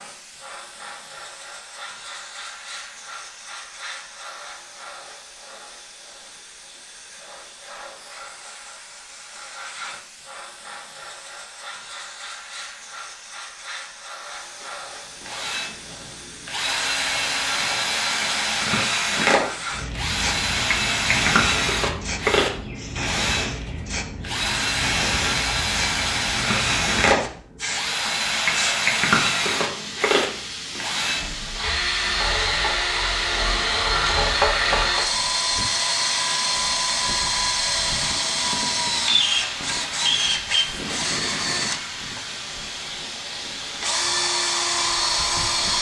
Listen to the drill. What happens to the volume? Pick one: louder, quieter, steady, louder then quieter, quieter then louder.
steady.